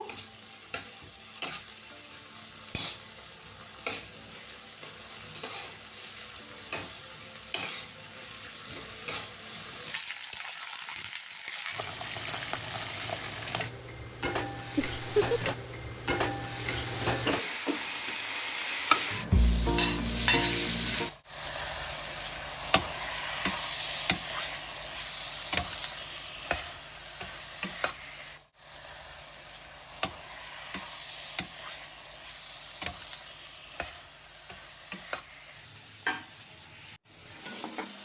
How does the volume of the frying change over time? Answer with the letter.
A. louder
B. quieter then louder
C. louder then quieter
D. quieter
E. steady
C.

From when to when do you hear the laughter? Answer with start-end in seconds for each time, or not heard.
14.8-15.6.